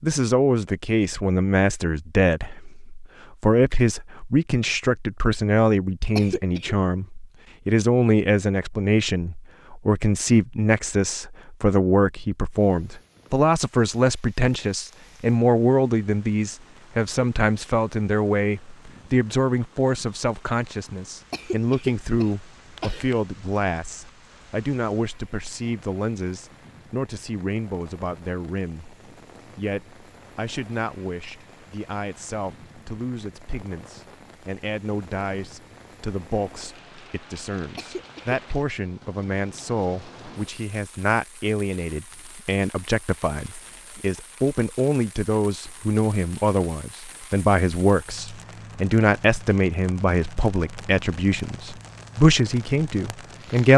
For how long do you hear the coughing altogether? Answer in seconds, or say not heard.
3 s.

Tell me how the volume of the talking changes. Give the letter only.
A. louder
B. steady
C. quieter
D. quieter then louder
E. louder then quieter
D.